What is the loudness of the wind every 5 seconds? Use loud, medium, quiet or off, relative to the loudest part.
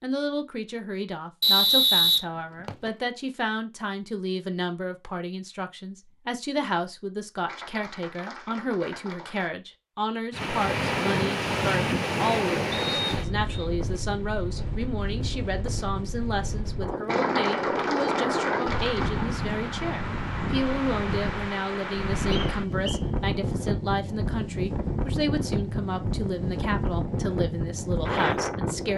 off, off, loud, loud, loud, loud.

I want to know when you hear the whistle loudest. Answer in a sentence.
The volume of the whistle peaks at 2 seconds.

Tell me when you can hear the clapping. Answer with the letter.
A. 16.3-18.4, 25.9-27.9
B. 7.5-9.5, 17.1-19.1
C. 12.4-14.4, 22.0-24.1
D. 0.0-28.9
B.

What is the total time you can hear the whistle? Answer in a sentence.
The whistle can be heard for 3 seconds in total.